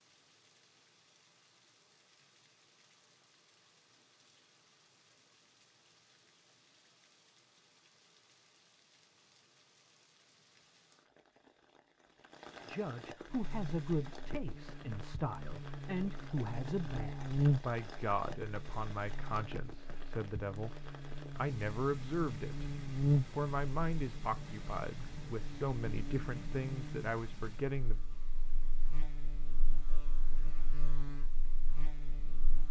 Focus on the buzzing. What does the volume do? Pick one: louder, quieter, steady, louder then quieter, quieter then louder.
louder then quieter.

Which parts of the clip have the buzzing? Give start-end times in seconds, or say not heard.
13.2-32.6.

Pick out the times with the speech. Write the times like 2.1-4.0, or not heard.
12.7-22.7, 23.3-28.0.